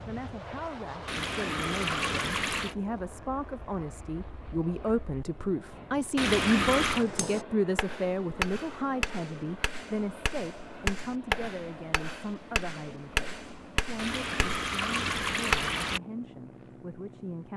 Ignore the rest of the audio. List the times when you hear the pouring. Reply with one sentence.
The pouring can be heard from 1.1 to 2.8 s, from 6.2 to 7.0 s and from 13.9 to 16.0 s.